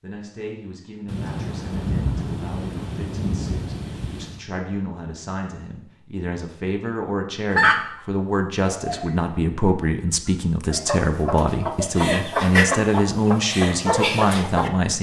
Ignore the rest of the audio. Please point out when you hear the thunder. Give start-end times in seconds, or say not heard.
1.1-4.5.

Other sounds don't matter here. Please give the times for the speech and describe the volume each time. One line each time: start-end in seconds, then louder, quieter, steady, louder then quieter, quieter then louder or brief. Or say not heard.
0.0-14.9 louder.